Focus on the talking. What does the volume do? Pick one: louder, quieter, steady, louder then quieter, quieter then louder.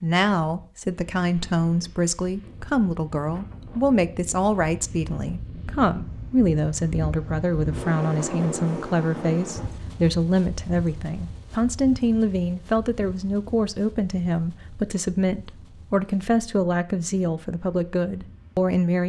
steady.